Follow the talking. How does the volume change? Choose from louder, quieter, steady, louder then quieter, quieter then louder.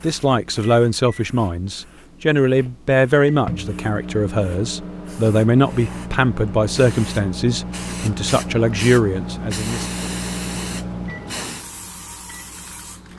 steady.